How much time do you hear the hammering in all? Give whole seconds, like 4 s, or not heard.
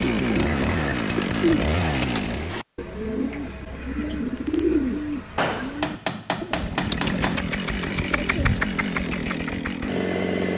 2 s.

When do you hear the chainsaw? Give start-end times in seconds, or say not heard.
0.0-2.6, 6.5-10.5.